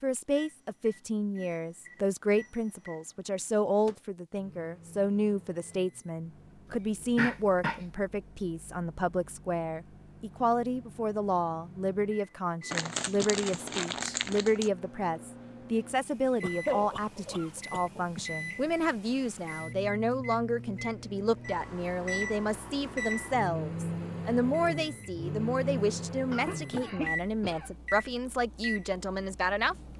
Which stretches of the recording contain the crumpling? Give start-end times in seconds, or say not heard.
12.7-14.7.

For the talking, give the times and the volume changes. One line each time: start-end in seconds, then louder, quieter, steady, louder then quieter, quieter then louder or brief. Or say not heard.
0.0-29.8 steady.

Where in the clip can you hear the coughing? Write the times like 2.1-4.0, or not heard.
6.7-7.8, 16.4-18.4, 26.3-27.7.